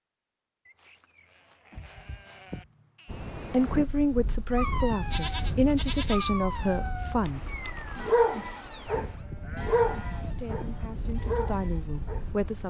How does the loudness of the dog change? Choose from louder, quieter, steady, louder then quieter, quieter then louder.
louder then quieter.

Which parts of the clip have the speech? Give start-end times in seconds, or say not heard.
3.5-7.4, 10.2-12.6.